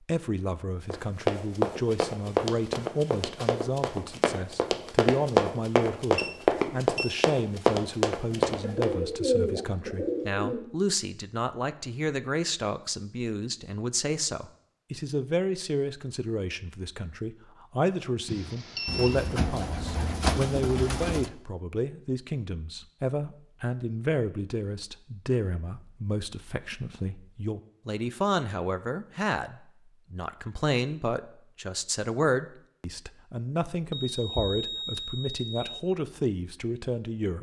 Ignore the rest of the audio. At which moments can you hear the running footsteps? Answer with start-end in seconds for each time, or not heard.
0.9-8.9.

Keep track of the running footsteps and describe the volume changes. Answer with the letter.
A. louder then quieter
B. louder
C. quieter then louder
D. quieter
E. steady
C.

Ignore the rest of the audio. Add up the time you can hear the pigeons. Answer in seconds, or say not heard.
5 s.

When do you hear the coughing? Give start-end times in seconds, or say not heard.
not heard.